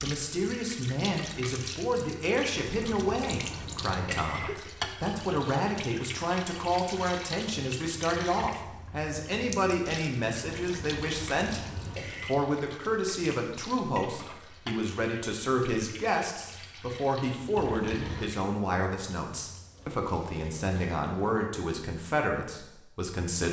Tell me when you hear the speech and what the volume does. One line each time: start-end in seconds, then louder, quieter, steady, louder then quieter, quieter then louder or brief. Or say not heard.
0.0-23.4 steady.